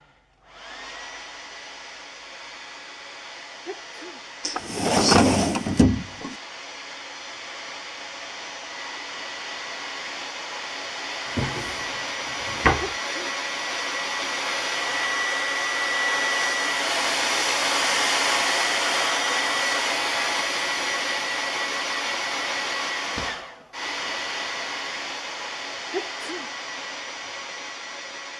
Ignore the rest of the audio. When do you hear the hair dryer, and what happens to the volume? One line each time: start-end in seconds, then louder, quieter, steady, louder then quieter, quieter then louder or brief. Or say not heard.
0.0-28.3 louder then quieter.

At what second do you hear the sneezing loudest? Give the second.
26 s.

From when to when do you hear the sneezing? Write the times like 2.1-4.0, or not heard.
3.6-4.2, 12.8-13.3, 25.9-26.5.